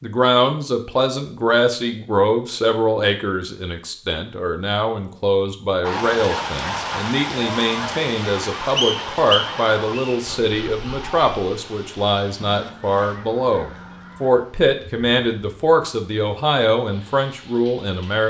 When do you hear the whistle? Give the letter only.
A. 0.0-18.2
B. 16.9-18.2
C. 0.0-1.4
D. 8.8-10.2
D.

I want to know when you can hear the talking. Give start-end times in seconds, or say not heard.
0.0-18.2.